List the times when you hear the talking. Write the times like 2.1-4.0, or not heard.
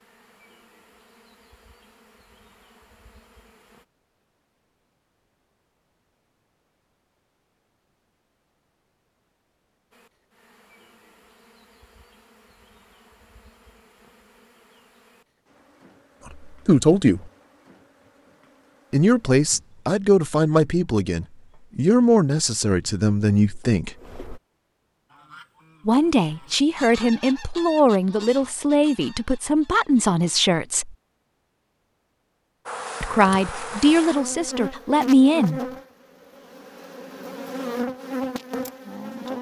16.4-17.2, 18.9-23.9, 25.9-30.9, 33.0-35.6.